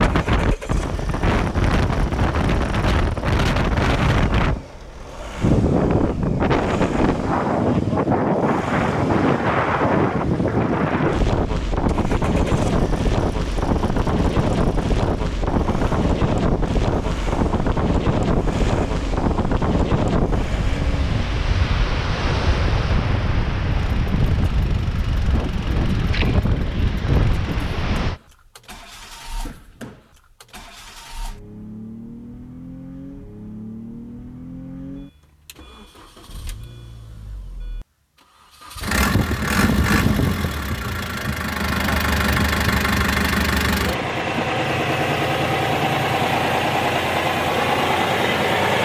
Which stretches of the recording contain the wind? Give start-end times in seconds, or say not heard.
0.0-28.2.